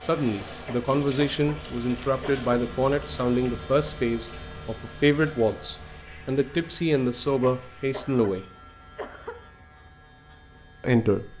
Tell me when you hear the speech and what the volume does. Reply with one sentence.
The speech can be heard from 0.0 to 8.4 s, at a steady volume; and briefly from 10.8 to 11.3 s.